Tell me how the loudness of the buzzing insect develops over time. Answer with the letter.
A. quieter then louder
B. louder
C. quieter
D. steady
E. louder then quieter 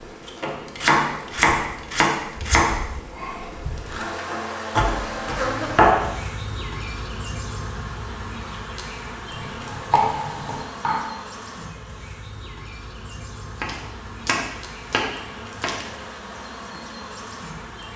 E.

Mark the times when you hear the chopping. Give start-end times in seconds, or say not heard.
0.5-2.8, 4.7-6.1, 9.3-11.1, 13.6-15.8.